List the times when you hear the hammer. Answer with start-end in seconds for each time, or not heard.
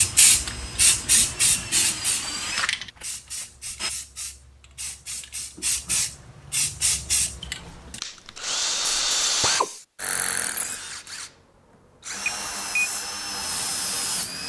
not heard.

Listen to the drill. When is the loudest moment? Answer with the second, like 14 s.
9 s.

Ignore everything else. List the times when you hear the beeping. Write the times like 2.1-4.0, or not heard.
12.2-12.9.